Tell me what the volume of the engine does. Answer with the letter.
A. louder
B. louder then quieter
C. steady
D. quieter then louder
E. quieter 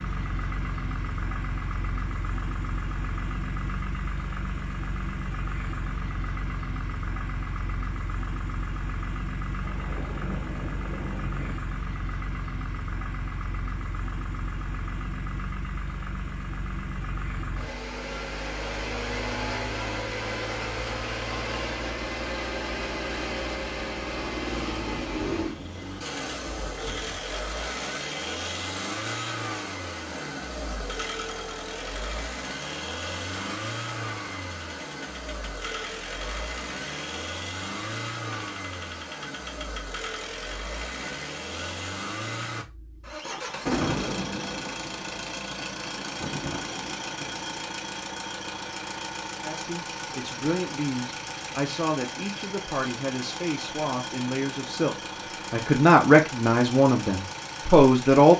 C.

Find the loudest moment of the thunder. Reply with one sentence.
The loudest moment of the thunder is at 44 seconds.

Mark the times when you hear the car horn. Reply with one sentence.
You can't hear the car horn here.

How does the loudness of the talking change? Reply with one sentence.
The loudness of the talking goes up.